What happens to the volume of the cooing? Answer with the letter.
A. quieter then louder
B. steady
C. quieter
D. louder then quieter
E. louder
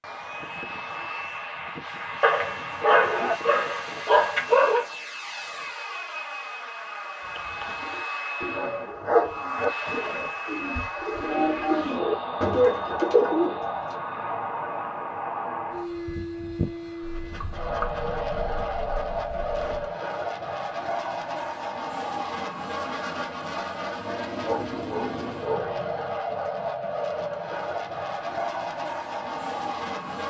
E.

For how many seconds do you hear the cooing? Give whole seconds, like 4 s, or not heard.
7 s.